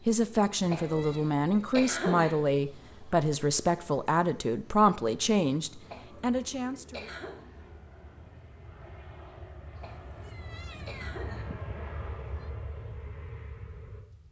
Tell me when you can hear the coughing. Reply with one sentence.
The coughing can be heard from 0.7 to 2.3 s, from 5.8 to 7.4 s and from 9.8 to 11.4 s.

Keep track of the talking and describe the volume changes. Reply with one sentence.
The loudness of the talking stays about the same.